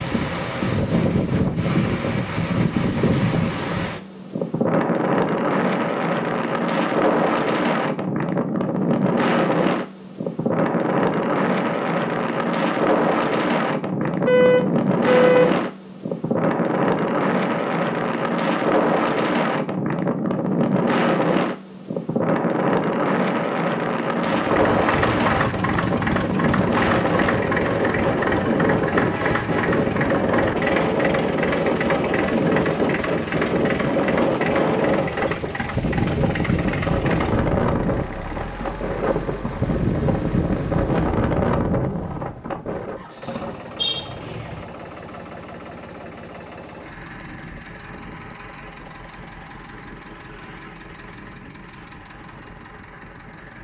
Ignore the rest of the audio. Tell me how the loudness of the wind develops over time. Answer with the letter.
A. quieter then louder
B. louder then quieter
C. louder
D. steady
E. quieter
D.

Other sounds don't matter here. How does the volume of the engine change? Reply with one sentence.
The loudness of the engine goes down.